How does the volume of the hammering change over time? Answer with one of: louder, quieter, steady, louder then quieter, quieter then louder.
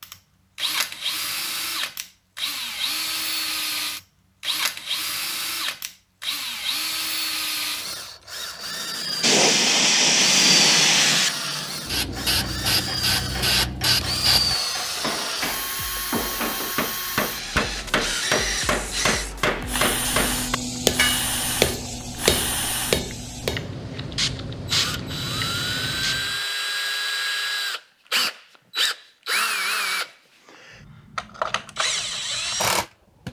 louder.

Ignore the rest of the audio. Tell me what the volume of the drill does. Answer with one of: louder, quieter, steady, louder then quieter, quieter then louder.
steady.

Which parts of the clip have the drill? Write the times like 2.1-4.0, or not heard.
0.0-33.2.